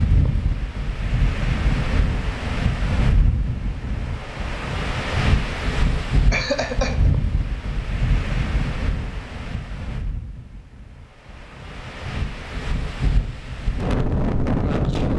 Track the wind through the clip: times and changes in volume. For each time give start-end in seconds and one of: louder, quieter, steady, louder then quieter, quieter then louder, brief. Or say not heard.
0.0-15.1 quieter then louder.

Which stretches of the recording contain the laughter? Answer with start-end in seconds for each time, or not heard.
6.3-7.1.